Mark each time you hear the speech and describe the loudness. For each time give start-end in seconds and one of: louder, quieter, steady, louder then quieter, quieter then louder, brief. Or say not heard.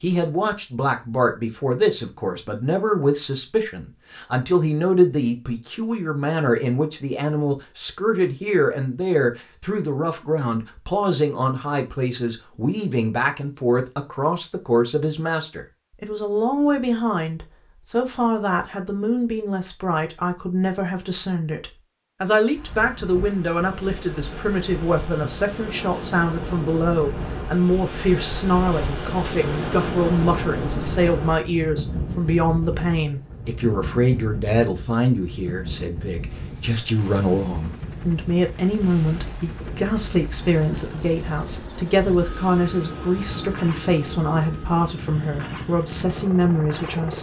0.0-47.1 steady.